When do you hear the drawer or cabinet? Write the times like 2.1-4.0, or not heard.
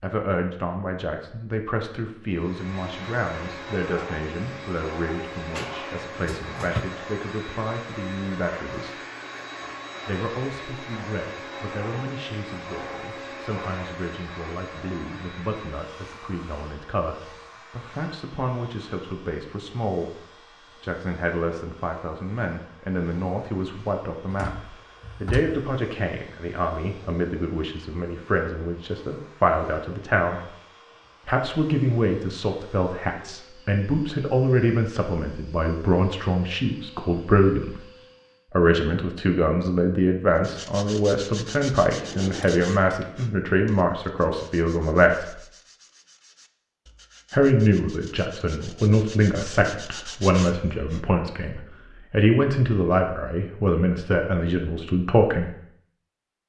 5.5-6.8, 24.2-25.6, 41.9-43.1.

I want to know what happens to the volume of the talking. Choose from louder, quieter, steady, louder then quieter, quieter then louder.
louder.